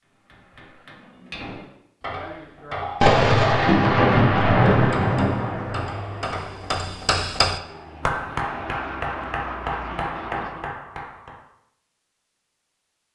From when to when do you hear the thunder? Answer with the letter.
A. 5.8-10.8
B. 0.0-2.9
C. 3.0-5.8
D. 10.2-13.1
C.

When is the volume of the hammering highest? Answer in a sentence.
The loudest moment of the hammering is at 7 seconds.